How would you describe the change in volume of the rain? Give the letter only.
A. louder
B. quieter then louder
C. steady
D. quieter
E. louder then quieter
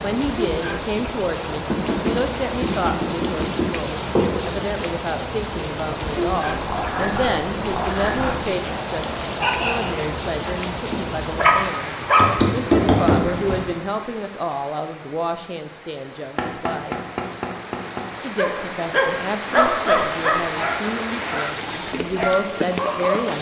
B.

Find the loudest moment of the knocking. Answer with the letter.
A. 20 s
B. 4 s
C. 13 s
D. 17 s
C.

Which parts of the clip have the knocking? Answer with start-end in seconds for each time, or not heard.
1.7-4.4, 12.2-13.8, 16.4-18.1.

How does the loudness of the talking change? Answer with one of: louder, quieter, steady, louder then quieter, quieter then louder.
steady.